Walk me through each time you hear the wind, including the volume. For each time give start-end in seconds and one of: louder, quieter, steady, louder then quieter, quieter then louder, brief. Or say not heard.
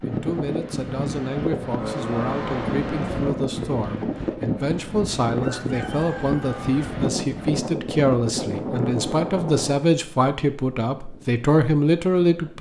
0.0-12.5 quieter.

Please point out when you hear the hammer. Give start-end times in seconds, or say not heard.
not heard.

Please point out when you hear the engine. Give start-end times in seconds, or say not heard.
1.7-3.4.